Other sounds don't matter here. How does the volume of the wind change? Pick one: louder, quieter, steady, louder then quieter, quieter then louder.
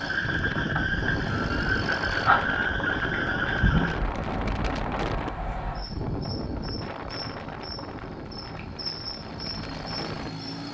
quieter.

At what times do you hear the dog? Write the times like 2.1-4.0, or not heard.
not heard.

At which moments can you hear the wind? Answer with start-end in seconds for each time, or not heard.
0.2-10.5.